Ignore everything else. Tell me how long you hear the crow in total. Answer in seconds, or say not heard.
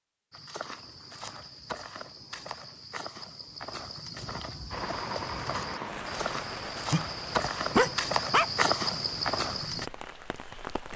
not heard.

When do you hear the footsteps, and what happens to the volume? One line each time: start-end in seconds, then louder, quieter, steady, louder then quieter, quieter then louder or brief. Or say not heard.
0.3-9.9 louder.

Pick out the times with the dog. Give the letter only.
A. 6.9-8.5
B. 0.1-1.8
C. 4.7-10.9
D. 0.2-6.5
A.